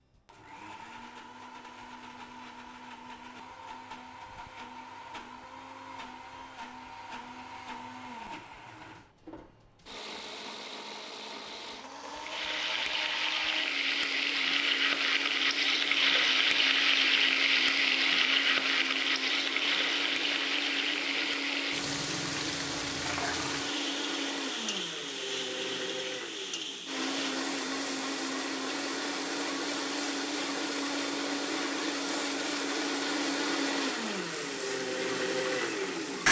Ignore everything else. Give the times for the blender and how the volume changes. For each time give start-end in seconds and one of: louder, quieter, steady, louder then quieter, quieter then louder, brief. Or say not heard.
0.0-36.2 louder.